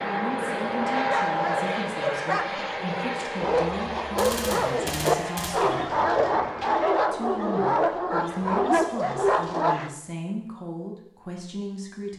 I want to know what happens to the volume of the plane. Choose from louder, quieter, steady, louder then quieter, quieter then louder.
quieter.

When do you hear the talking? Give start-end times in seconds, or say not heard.
0.0-6.0, 7.1-12.1.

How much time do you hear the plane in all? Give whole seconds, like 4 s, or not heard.
7 s.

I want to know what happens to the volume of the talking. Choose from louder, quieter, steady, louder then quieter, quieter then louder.
steady.